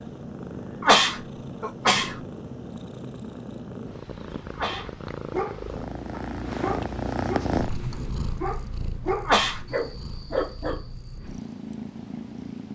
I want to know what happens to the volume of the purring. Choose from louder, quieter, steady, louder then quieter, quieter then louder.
louder then quieter.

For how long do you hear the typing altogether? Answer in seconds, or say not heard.
not heard.